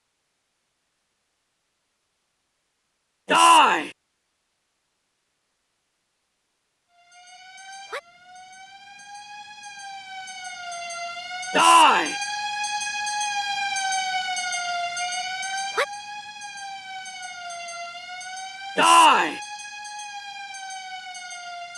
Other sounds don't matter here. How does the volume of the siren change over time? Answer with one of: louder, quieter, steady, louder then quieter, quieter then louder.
louder then quieter.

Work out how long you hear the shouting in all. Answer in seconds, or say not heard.
2 s.